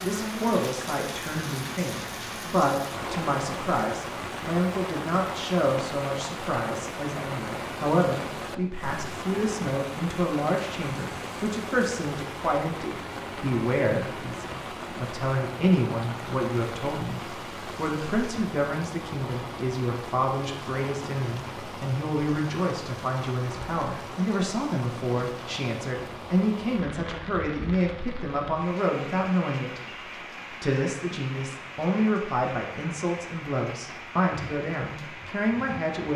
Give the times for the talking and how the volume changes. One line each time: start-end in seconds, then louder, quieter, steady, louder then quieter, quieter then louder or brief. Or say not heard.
0.0-36.1 steady.